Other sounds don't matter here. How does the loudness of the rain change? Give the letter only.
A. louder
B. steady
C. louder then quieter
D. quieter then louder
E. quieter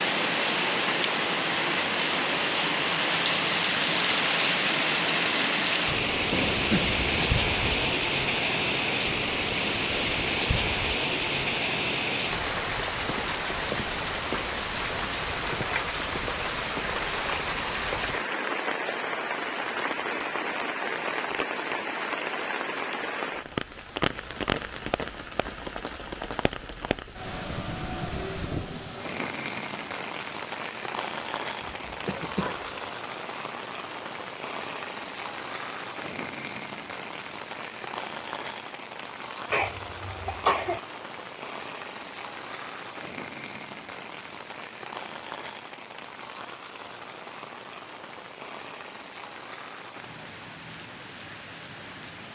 E.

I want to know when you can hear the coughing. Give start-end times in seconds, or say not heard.
6.3-7.9, 31.6-32.9, 39.5-40.8.